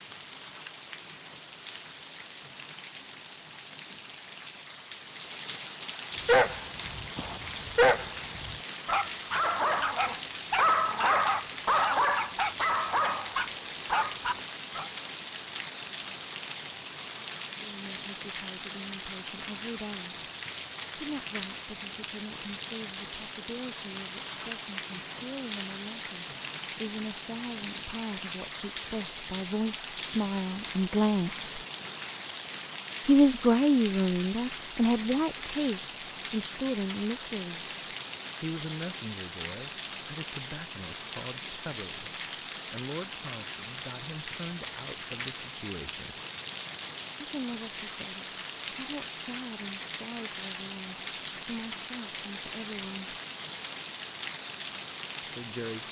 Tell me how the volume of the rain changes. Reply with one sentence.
The volume of the rain stays about the same.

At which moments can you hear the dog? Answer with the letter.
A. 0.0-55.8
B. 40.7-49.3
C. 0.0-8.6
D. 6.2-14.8
D.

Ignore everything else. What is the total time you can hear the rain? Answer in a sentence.
The rain can be heard for 56 seconds in total.